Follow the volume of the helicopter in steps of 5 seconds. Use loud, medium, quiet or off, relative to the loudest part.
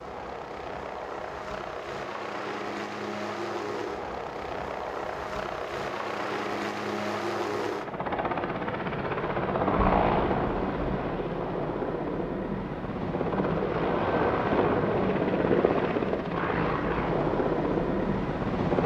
medium, loud, loud, loud.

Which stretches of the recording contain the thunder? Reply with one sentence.
You can hear the thunder from 9.4 to 11.0 s.